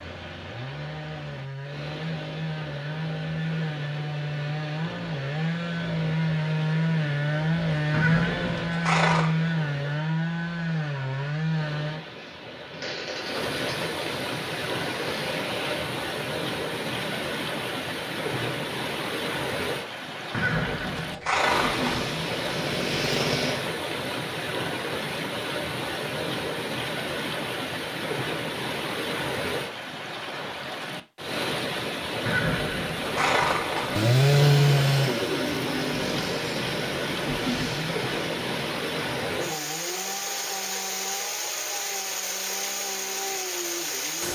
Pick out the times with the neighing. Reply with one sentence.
You can hear the neighing from 7.9 to 9.3 s, from 20.3 to 22.1 s and from 32.2 to 34.0 s.